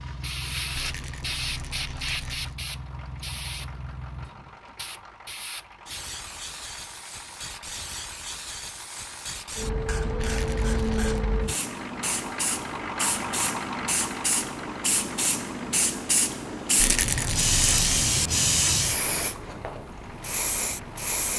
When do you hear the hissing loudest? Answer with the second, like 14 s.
18 s.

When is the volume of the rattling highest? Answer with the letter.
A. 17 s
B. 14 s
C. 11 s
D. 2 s
A.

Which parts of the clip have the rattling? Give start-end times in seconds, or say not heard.
0.8-2.5, 10.2-11.2, 16.8-17.9.